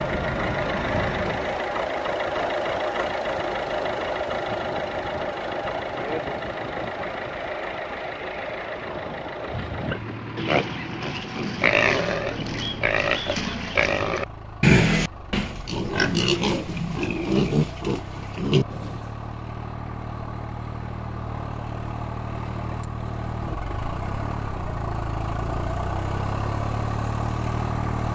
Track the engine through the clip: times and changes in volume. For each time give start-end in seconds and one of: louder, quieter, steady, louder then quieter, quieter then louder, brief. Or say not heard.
0.0-28.1 quieter then louder.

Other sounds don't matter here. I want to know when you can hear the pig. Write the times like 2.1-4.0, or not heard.
9.4-19.1.